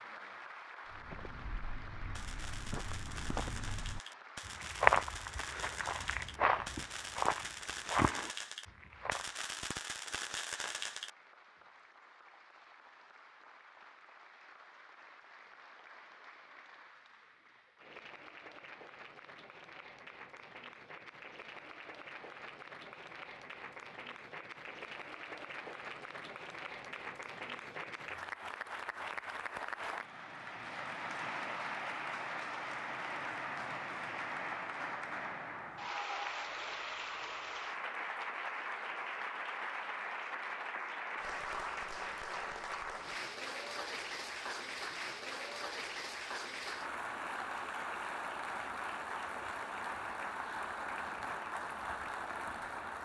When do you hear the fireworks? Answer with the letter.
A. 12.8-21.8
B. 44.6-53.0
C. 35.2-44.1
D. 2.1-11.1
D.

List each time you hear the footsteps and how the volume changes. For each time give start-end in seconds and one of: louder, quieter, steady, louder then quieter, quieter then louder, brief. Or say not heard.
0.9-9.2 louder then quieter.